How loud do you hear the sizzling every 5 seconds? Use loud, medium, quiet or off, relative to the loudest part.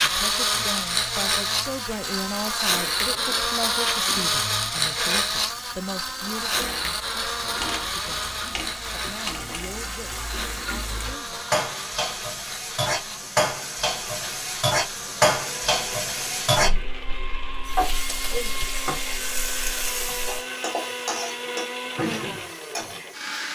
quiet, medium, loud, loud, medium.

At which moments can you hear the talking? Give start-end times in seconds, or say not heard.
0.0-11.4.